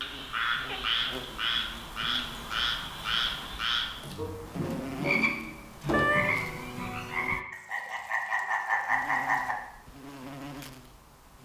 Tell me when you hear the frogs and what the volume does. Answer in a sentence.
You can hear the frogs from 0.0 to 9.6 s, at a steady volume.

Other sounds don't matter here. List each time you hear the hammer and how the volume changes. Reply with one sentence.
The hammer can't be heard in this clip.